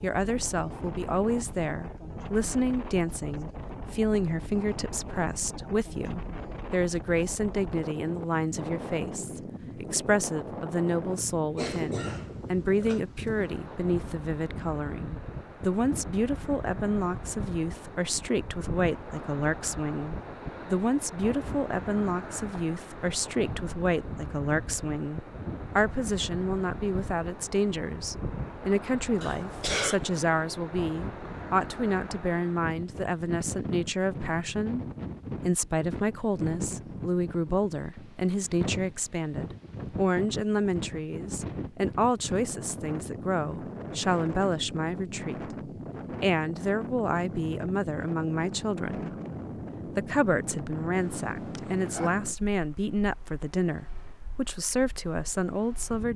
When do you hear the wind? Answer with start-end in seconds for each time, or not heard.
0.0-56.1.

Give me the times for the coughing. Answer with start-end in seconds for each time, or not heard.
11.6-13.0, 29.2-30.1, 51.0-52.2.